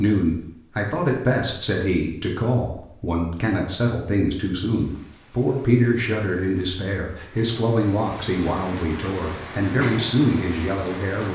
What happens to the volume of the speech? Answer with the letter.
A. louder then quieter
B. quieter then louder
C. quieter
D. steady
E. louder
D.